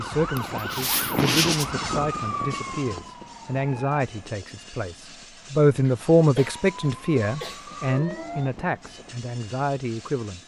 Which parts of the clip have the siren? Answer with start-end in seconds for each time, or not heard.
0.0-4.0, 6.3-8.5.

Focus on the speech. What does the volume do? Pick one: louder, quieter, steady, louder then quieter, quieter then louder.
louder then quieter.